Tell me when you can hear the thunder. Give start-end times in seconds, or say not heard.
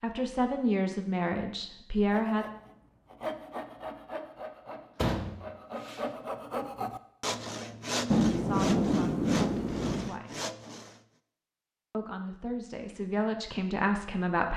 8.1-10.1.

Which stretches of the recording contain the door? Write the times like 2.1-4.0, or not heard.
5.0-6.0.